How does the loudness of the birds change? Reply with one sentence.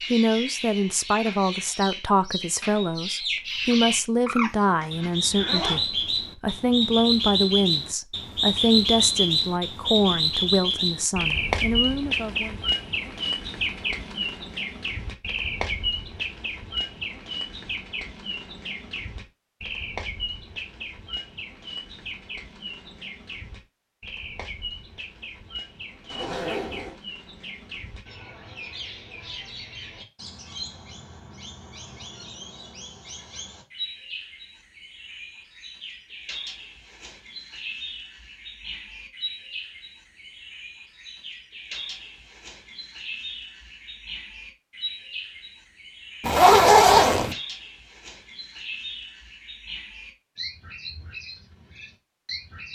The loudness of the birds goes down.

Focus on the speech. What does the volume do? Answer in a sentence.
The volume of the speech stays about the same.